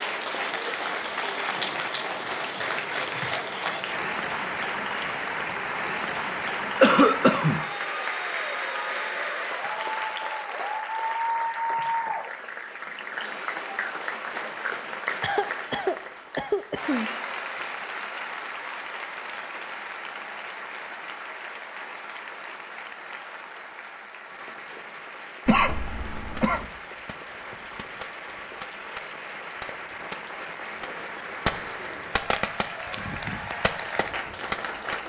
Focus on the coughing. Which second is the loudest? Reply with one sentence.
The volume of the coughing peaks at 7 seconds.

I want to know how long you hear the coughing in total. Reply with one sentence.
You can hear the coughing for 4 seconds altogether.